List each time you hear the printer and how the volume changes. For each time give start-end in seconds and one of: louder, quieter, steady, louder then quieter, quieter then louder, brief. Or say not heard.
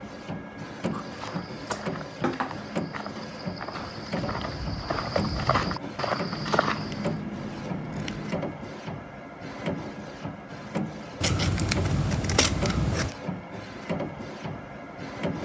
0.0-15.3 steady.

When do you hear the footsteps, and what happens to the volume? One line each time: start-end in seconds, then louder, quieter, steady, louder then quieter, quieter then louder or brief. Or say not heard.
0.9-7.2 louder.